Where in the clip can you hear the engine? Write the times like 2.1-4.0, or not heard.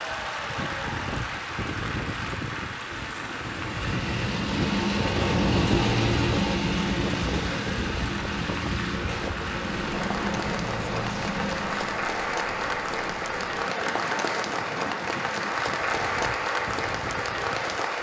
3.5-12.1.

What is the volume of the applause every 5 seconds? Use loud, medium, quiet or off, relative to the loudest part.
medium, medium, loud, loud.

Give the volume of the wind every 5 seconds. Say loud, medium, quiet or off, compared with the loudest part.
loud, loud, medium, medium.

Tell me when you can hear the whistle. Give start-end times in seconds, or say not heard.
not heard.